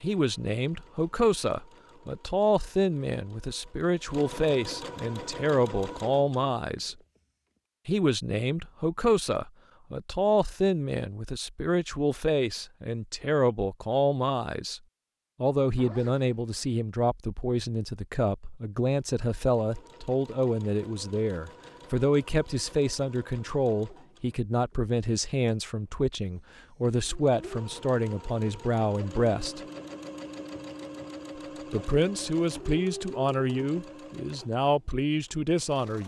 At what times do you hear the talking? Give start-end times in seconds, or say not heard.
0.0-7.0, 7.8-14.8, 15.4-29.6, 31.7-36.0.